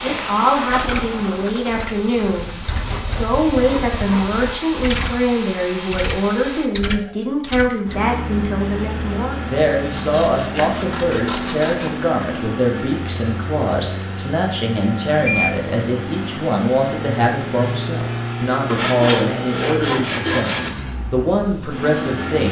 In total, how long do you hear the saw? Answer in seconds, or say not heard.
6 s.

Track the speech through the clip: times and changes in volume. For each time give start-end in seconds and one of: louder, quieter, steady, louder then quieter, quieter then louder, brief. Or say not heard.
0.0-22.4 steady.